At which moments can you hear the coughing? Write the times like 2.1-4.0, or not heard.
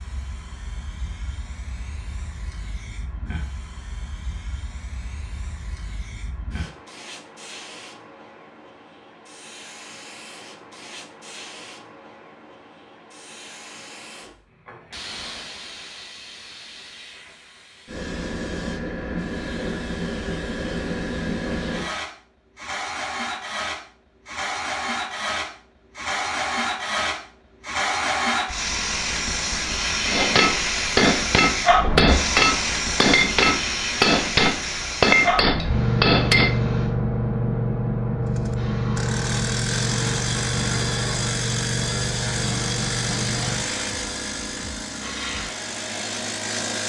not heard.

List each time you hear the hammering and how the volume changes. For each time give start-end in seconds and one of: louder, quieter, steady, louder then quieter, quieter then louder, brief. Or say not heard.
30.1-36.6 steady.